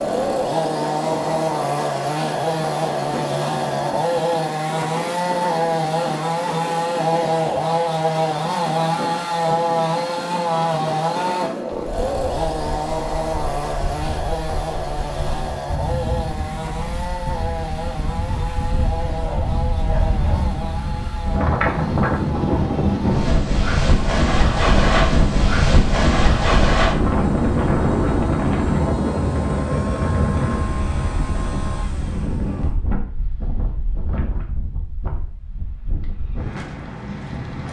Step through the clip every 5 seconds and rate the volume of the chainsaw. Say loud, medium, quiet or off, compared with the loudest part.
loud, loud, loud, medium, quiet, quiet, quiet, off.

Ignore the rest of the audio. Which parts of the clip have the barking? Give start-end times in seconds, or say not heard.
19.2-20.5.